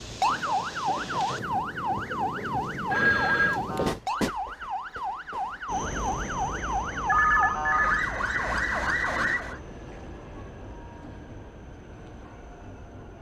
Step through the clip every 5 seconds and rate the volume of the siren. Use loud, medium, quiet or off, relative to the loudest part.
loud, loud, off.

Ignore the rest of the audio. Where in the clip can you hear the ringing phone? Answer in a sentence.
The ringing phone can be heard from 2.9 to 3.6 s and from 7.0 to 8.1 s.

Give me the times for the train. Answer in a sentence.
The train can be heard from 0.0 to 13.1 s.